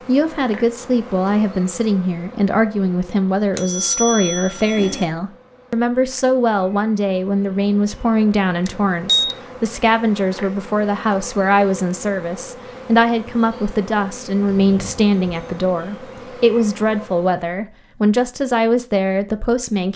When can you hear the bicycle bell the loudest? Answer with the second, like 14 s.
9 s.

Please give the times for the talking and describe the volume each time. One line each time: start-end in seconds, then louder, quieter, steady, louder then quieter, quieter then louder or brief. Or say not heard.
0.1-19.9 steady.